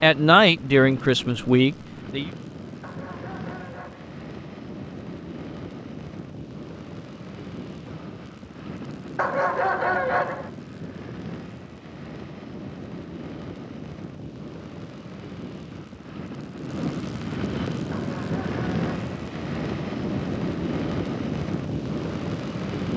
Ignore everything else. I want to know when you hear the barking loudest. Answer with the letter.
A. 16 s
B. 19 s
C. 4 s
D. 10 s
D.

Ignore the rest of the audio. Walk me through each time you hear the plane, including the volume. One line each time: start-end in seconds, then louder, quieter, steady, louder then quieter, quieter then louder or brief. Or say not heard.
0.0-22.9 louder.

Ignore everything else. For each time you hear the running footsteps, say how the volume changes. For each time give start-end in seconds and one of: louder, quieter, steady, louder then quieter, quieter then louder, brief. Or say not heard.
not heard.